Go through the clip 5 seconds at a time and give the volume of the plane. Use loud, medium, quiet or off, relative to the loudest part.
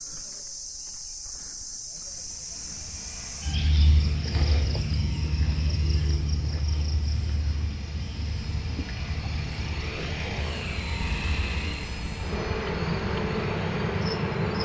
medium, medium, loud.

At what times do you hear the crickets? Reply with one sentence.
The crickets can be heard from 0.0 to 14.6 s.